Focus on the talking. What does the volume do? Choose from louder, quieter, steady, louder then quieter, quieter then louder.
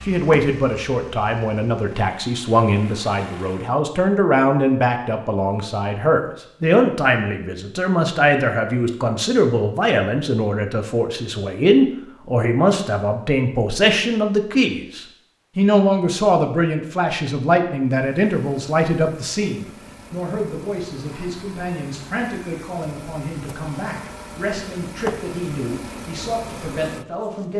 quieter.